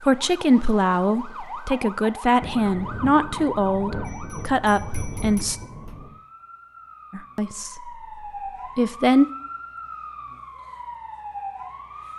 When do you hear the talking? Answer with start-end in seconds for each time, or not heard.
0.1-5.5, 7.1-7.9, 8.8-9.2.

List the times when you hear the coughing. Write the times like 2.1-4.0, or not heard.
not heard.